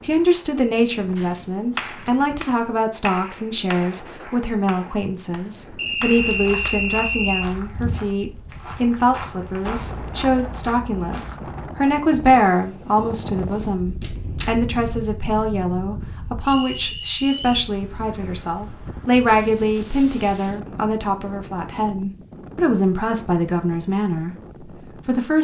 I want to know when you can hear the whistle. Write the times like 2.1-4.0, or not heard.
5.8-7.5, 16.4-17.6.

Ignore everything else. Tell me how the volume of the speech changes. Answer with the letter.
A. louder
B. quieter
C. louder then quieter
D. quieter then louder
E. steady
E.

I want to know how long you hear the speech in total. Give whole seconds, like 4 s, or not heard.
25 s.